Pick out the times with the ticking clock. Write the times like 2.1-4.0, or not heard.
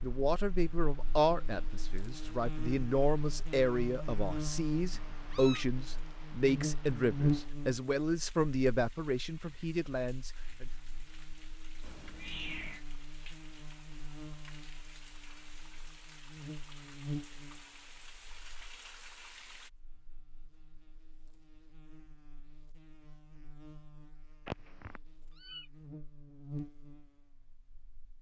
not heard.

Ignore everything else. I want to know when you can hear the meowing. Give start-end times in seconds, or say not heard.
4.9-5.7, 11.8-12.8, 24.4-25.6.